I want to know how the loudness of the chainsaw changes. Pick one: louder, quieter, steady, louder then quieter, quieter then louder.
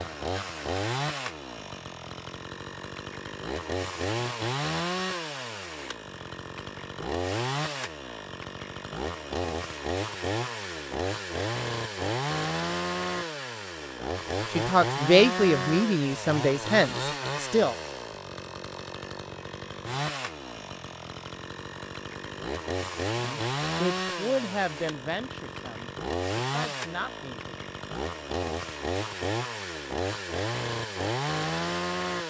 steady.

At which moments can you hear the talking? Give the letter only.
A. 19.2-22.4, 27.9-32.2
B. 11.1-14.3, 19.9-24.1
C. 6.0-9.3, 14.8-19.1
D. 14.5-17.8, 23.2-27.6
D.